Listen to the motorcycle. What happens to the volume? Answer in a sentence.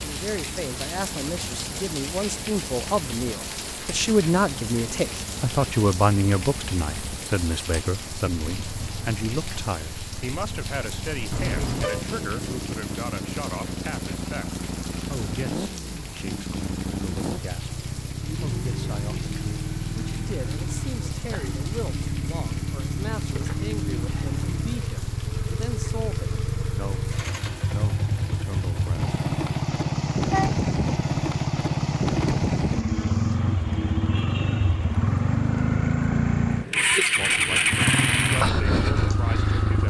The loudness of the motorcycle goes up.